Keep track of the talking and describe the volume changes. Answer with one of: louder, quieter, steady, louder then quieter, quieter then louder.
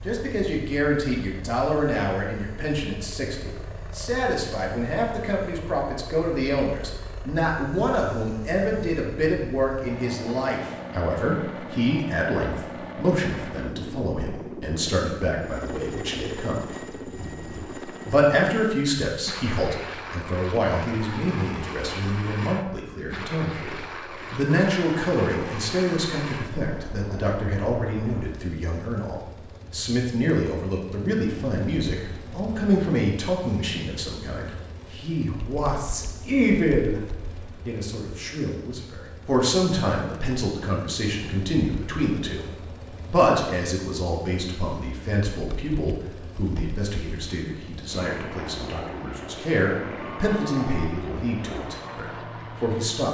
steady.